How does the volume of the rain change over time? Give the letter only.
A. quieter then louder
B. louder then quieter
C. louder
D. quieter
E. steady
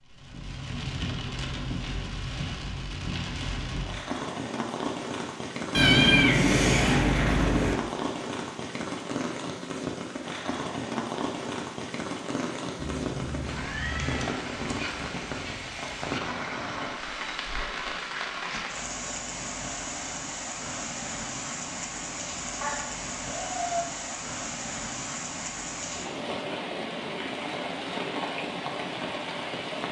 E.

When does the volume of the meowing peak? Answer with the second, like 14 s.
6 s.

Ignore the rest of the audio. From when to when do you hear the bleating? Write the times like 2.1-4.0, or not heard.
not heard.